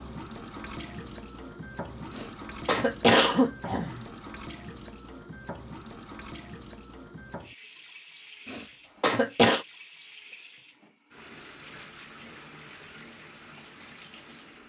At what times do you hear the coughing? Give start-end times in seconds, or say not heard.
2.1-4.0, 8.4-9.7.